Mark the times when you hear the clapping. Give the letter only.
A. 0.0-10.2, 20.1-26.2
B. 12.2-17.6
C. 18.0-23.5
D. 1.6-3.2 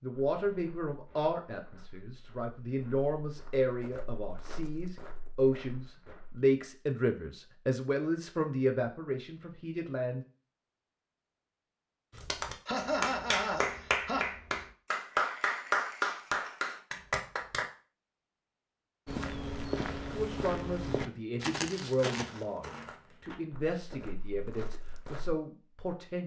B.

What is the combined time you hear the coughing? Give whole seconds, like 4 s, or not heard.
2 s.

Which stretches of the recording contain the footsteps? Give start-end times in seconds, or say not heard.
0.1-6.4, 19.1-25.4.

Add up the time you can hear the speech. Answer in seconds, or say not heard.
16 s.